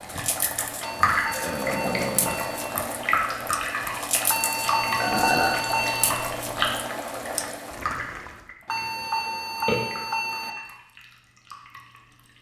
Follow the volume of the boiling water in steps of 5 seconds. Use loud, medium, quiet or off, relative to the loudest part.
loud, loud, off.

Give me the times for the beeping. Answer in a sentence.
You can hear the beeping from 0.8 to 2.6 s, from 4.2 to 6.2 s and from 8.7 to 10.6 s.